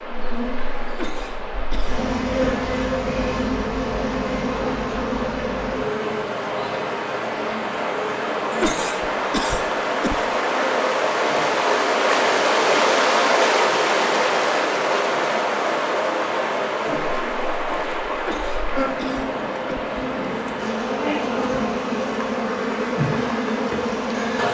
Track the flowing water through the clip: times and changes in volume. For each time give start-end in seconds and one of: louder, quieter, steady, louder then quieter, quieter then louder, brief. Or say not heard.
0.0-24.3 louder then quieter.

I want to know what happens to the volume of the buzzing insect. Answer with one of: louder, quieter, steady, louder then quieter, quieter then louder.
quieter then louder.